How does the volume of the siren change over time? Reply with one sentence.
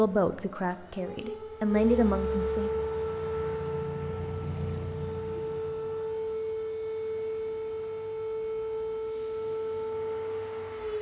The volume of the siren stays about the same.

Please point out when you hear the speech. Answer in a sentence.
The speech can be heard from 0.0 to 2.7 s.